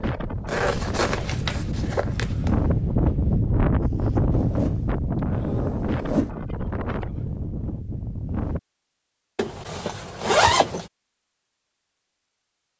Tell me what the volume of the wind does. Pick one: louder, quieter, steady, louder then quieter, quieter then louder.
louder then quieter.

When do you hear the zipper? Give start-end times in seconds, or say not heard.
0.5-2.6, 4.3-6.3, 9.3-10.8.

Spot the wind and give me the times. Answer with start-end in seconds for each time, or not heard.
0.0-8.6.